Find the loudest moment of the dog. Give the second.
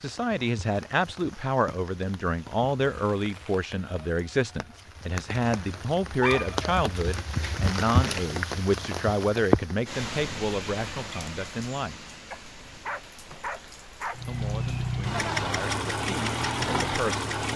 6 s.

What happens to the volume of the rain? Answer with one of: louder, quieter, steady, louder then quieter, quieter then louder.
louder then quieter.